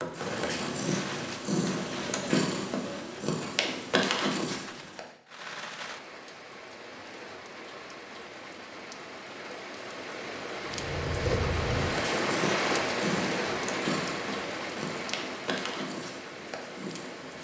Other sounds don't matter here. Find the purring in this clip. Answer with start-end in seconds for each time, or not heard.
0.0-5.0, 10.7-17.3.